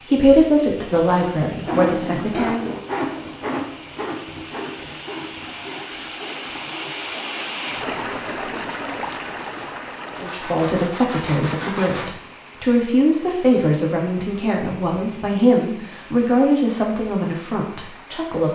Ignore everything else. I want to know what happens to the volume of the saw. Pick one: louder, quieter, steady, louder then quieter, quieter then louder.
quieter then louder.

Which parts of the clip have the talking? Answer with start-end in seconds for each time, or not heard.
0.0-2.7, 10.2-18.4.